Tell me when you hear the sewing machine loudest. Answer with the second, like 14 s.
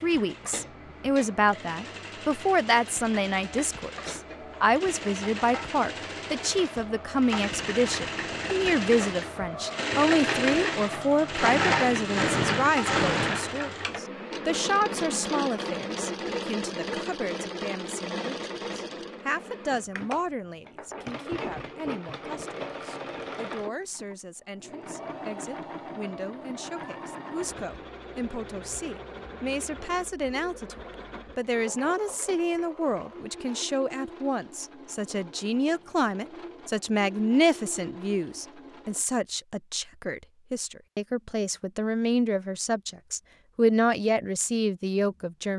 12 s.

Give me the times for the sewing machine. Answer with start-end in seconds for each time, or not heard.
0.0-39.0.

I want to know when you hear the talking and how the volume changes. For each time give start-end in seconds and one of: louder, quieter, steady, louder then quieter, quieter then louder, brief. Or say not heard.
0.0-45.5 quieter then louder.